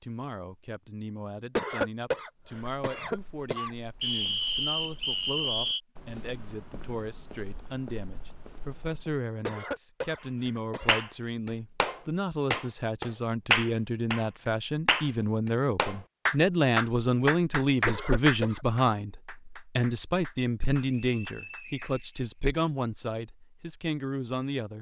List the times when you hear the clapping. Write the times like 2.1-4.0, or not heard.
10.8-14.2, 14.8-21.9.